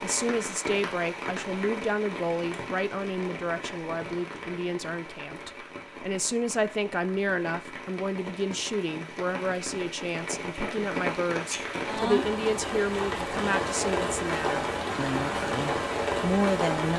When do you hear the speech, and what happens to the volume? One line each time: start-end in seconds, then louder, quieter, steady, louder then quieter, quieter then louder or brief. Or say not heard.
0.0-16.9 steady.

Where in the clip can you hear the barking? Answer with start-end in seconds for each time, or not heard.
not heard.